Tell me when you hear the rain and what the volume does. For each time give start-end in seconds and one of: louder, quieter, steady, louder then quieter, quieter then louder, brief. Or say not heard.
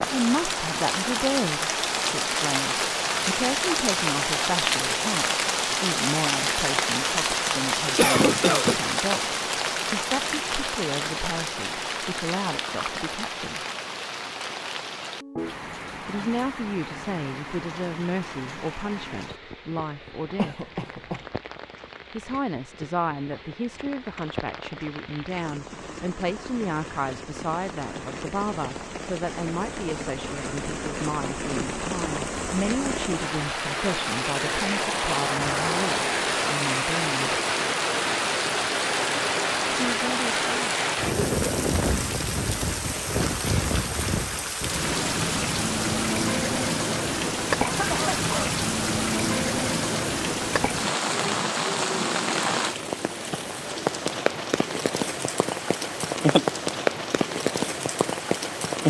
0.0-58.8 quieter then louder.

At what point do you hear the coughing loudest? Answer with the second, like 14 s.
8 s.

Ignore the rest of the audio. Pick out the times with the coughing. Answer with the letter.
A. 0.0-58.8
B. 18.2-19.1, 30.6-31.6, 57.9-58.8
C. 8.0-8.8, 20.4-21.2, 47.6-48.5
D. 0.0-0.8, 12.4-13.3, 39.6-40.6
C.